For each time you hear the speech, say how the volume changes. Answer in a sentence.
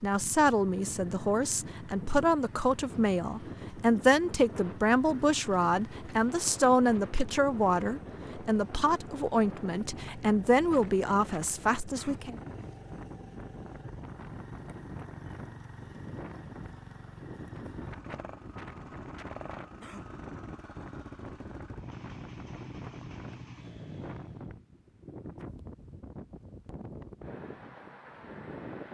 You can hear the speech from 0.0 to 12.3 s, at a steady volume.